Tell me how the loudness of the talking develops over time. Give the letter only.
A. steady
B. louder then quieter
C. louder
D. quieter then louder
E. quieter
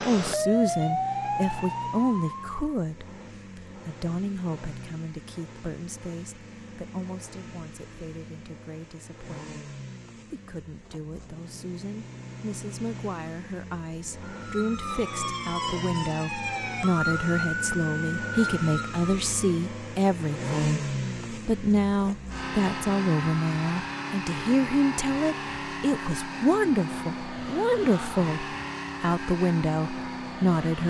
D.